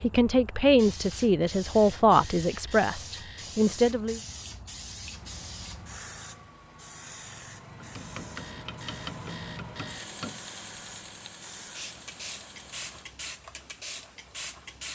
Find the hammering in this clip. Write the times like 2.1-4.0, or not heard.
7.8-10.4.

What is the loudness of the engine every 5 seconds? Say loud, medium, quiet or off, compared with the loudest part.
off, loud, loud.